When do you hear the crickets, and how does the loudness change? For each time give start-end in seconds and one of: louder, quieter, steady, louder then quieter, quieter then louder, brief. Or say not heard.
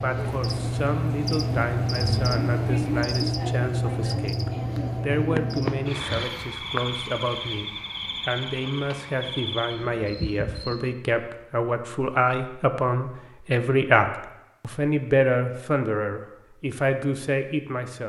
0.0-10.9 quieter.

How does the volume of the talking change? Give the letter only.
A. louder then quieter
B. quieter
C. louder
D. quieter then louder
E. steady
C.